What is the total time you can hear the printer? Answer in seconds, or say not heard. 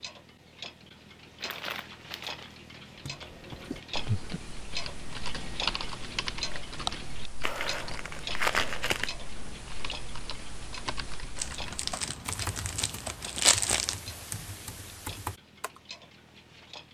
not heard.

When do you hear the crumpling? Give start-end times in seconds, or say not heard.
1.4-2.5, 7.4-9.2, 11.3-13.9.